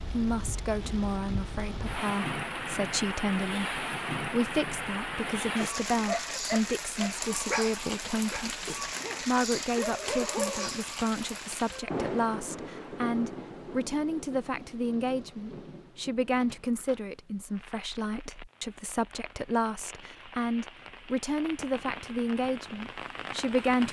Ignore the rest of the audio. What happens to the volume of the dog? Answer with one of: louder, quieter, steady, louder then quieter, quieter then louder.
quieter then louder.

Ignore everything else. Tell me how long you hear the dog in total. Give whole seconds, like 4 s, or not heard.
5 s.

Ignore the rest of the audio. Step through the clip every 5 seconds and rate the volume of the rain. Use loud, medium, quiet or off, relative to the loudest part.
loud, loud, loud, quiet, medium.